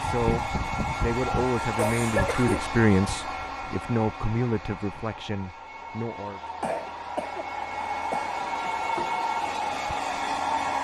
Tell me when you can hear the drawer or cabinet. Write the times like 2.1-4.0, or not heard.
not heard.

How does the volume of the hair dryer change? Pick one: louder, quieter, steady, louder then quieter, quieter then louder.
quieter then louder.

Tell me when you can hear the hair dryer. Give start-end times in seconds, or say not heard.
0.0-10.8.